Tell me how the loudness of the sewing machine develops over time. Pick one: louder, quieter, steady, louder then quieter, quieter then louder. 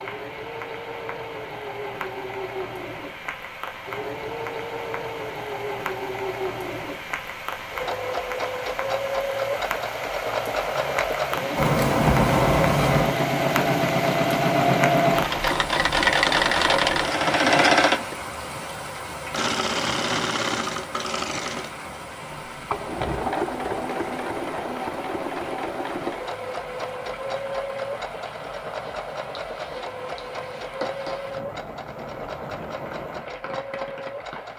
louder then quieter.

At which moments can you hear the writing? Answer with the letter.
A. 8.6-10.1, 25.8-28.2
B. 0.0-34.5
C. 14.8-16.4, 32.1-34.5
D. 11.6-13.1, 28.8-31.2
D.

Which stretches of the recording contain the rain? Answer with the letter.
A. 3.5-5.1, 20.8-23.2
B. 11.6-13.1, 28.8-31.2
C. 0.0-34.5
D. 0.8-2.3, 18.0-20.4
C.